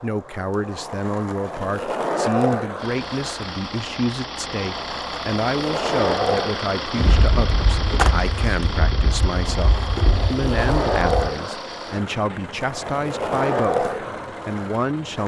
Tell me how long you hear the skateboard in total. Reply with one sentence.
The skateboard can be heard for 15 seconds in total.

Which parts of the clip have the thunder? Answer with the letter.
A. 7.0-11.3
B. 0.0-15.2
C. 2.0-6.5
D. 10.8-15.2
A.